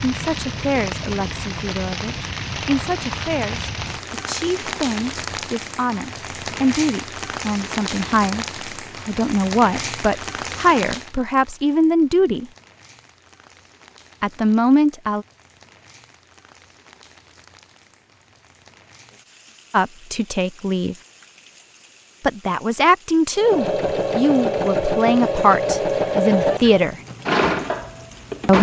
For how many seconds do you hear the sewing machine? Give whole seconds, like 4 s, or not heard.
5 s.